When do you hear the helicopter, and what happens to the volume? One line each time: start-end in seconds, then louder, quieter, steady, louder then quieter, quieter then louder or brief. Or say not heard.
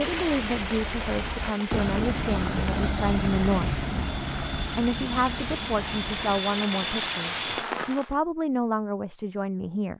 0.0-6.4 louder then quieter.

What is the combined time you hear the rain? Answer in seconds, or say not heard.
8 s.